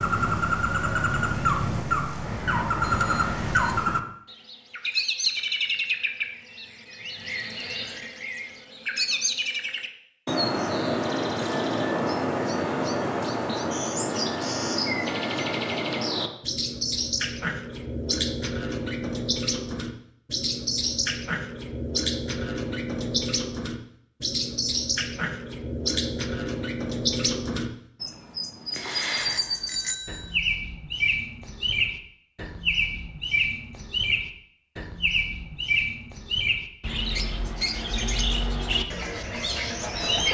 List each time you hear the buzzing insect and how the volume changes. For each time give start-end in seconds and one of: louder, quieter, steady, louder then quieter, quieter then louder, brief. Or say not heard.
not heard.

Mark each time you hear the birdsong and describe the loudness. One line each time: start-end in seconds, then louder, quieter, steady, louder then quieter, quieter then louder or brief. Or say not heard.
0.0-40.2 steady.